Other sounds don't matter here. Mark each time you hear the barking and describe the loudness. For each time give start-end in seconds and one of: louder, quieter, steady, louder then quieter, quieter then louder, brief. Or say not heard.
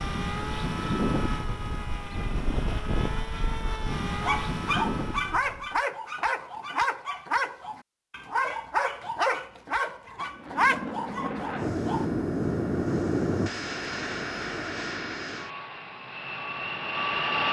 4.0-12.1 steady.